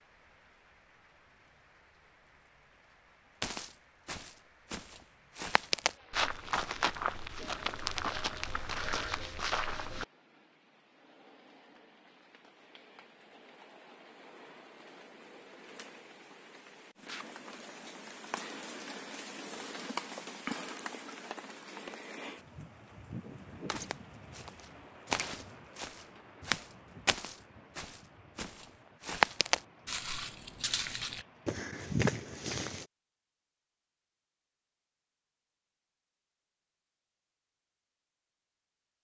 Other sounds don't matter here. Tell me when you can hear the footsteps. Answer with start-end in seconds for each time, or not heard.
3.4-10.1, 23.6-32.9.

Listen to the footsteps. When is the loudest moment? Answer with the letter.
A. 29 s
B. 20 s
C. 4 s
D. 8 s
A.